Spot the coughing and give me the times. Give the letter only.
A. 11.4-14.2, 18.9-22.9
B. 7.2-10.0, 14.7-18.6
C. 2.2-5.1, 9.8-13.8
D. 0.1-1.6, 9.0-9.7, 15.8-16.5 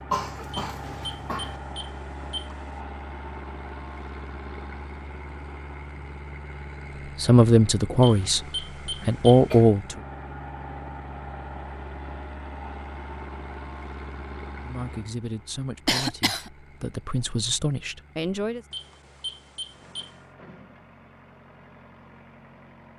D.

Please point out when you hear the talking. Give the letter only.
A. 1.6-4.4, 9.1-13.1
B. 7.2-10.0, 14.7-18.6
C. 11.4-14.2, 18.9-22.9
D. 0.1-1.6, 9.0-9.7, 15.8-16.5
B.